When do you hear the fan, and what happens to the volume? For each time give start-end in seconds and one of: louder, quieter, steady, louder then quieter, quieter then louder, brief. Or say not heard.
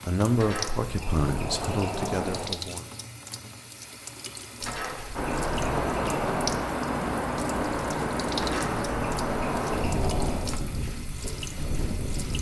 5.2-12.3 quieter.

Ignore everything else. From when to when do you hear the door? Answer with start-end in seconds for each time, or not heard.
0.3-2.5, 4.6-6.7, 8.3-10.5.